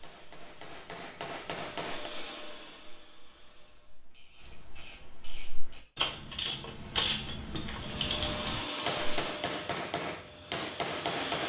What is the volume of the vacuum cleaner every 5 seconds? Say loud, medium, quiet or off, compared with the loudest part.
medium, loud, loud.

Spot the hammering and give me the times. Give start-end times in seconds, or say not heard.
0.0-2.1, 8.8-11.4.